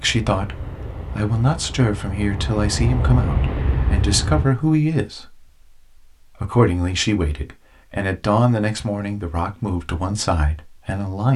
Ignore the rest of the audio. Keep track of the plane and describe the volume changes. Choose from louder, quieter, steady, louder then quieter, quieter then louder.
louder.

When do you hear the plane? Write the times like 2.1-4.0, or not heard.
0.0-4.5.